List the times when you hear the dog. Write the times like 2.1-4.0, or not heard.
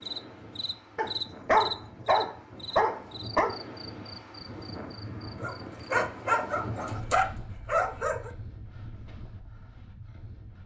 0.9-3.5, 5.4-8.3.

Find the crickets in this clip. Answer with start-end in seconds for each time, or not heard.
0.0-6.0.